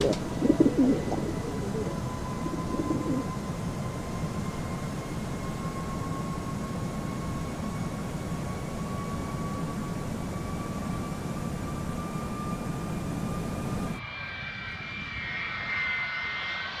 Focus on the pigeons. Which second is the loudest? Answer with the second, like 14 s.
1 s.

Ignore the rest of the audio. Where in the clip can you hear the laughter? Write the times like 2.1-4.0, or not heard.
not heard.